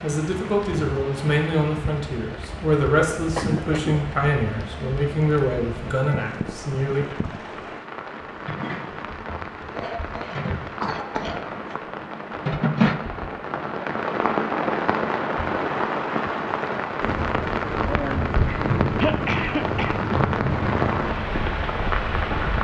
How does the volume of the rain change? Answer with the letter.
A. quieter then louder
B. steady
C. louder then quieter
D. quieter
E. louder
E.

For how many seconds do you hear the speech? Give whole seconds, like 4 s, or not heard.
7 s.